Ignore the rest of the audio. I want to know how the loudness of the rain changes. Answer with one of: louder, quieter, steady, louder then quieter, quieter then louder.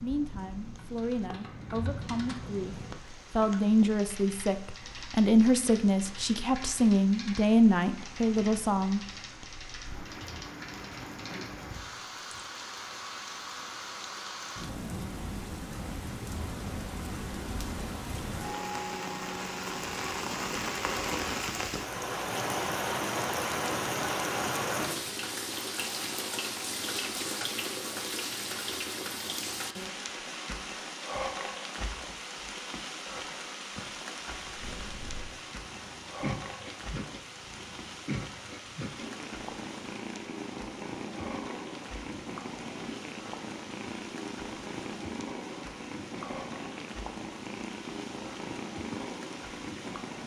louder then quieter.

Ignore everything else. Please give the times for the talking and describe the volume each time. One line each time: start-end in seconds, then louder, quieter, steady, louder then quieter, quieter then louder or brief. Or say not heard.
0.0-9.0 louder.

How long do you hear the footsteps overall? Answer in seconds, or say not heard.
not heard.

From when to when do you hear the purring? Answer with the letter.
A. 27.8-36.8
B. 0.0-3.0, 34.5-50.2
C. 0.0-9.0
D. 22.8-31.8
B.